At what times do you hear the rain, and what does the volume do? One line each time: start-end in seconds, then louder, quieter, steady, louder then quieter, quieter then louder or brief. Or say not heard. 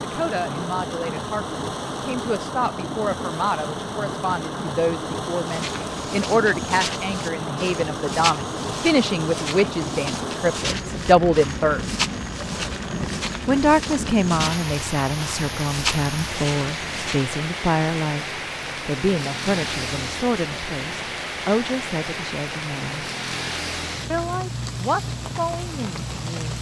0.0-26.5 steady.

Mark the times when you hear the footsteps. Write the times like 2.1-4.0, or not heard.
5.4-17.4.